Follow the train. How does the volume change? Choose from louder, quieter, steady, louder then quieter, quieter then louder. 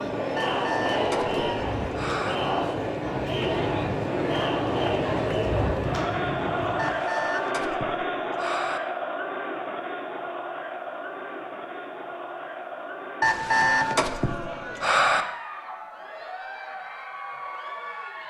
louder.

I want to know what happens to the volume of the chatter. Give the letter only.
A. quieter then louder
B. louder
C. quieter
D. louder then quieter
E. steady
C.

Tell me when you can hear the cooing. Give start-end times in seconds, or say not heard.
not heard.